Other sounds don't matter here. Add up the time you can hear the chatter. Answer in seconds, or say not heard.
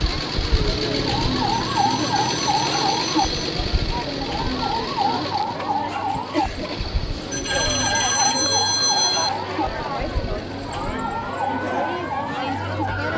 13 s.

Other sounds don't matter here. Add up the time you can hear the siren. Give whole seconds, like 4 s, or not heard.
13 s.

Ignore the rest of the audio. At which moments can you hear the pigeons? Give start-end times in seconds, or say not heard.
not heard.